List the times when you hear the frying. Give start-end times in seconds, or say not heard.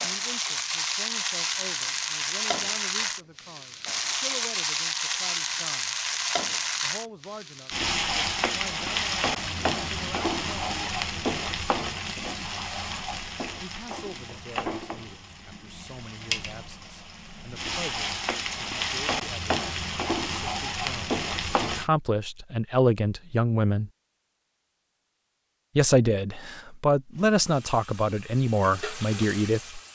0.0-21.9, 27.1-29.9.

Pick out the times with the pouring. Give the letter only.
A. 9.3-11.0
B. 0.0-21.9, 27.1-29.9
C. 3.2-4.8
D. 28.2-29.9
A.